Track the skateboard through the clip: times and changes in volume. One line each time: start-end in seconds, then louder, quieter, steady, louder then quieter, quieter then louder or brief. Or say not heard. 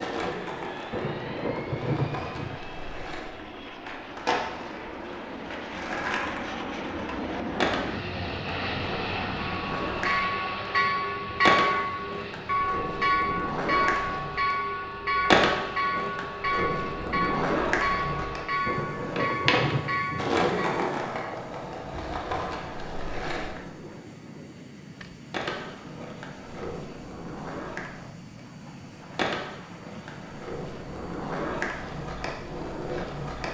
0.0-23.6 louder
25.3-33.4 louder.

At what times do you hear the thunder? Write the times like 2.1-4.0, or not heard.
0.9-2.6, 18.6-20.3.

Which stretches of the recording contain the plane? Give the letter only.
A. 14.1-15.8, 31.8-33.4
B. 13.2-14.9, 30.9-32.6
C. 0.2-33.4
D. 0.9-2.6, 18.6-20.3
C.